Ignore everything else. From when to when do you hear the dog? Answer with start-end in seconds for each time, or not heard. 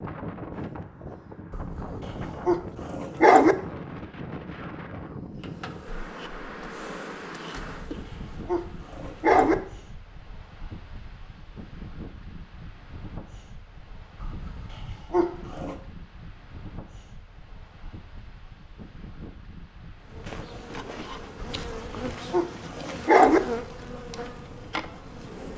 1.5-3.5, 7.6-9.6, 14.2-15.8, 21.4-23.4.